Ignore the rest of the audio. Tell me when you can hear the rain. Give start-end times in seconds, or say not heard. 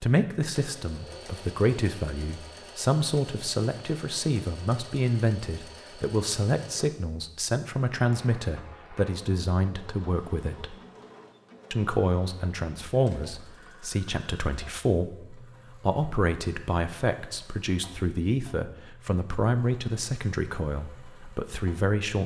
not heard.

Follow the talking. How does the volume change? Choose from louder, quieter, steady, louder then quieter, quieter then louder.
steady.